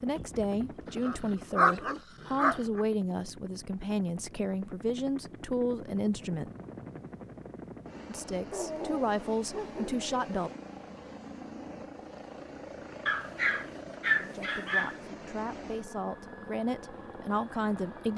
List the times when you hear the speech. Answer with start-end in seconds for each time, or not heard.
0.0-6.5, 8.1-10.5, 14.2-18.1.